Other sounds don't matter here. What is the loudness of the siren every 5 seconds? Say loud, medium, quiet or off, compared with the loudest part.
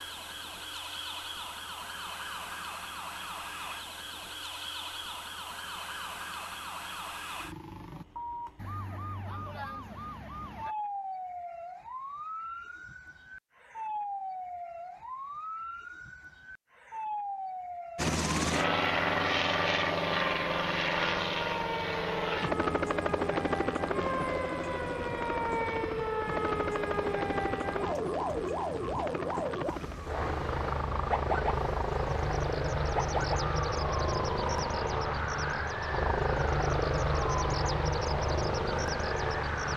medium, medium, medium, medium, loud, loud, loud, medium.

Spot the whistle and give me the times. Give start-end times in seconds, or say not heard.
not heard.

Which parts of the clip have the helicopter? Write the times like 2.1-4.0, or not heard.
17.9-39.7.